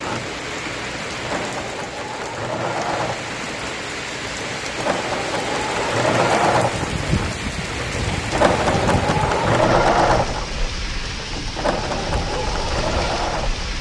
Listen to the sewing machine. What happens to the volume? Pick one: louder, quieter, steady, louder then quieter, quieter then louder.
louder then quieter.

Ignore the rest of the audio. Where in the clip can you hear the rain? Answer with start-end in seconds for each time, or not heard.
0.0-13.7.